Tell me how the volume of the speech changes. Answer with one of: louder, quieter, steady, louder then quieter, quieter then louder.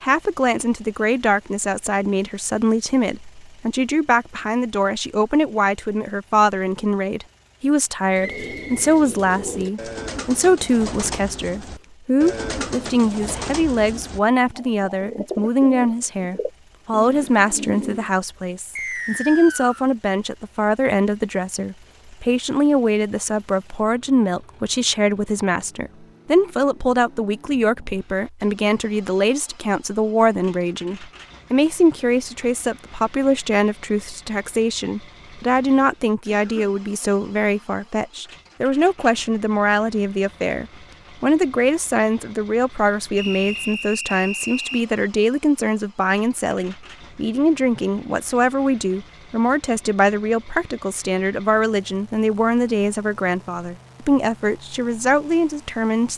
steady.